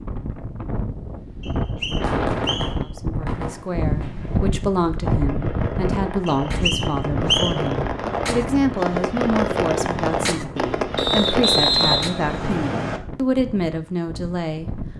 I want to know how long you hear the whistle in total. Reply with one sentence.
The whistle can be heard for 5 seconds in total.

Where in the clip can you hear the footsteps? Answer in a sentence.
The footsteps can't be heard in this clip.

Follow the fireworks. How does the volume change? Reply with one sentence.
The volume of the fireworks goes up.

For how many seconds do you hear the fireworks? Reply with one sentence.
You can hear the fireworks for 10 seconds altogether.